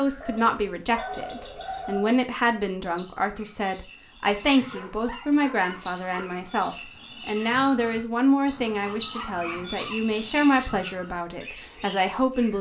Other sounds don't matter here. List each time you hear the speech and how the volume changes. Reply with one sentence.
The speech can be heard from 0.0 to 12.5 s, at a steady volume.